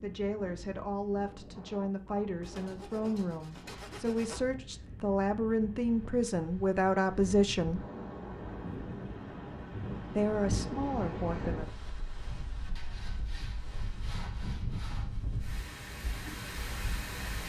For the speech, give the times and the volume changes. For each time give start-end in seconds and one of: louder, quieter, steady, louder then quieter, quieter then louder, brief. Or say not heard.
0.0-7.8 louder
10.1-11.7 brief.